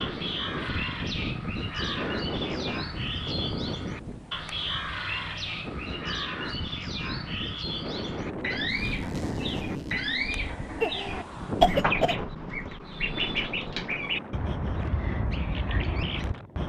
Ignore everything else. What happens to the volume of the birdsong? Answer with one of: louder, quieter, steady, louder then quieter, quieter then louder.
steady.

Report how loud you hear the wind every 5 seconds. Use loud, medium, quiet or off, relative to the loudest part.
loud, loud, loud, medium.